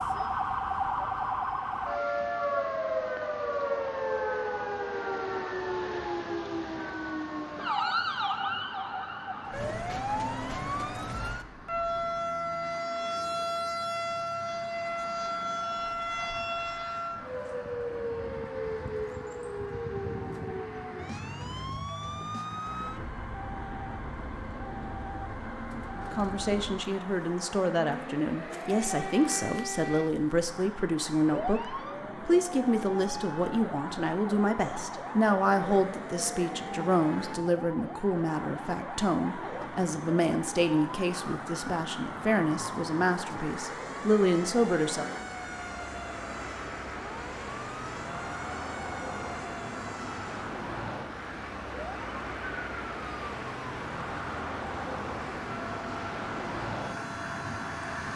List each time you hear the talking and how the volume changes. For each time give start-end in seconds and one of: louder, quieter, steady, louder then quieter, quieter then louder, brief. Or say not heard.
26.1-45.0 steady.